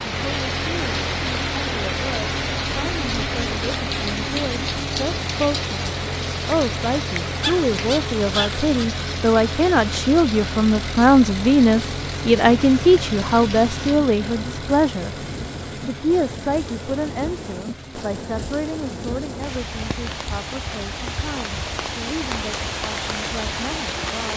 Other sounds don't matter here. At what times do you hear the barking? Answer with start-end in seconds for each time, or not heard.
7.4-8.9.